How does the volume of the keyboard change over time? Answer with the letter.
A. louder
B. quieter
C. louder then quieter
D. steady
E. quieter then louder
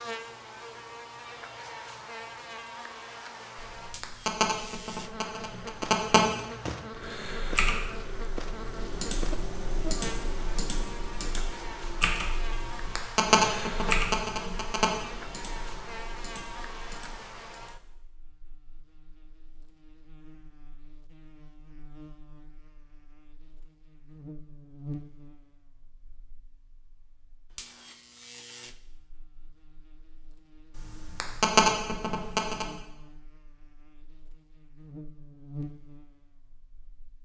B.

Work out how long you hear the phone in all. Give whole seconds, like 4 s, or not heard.
7 s.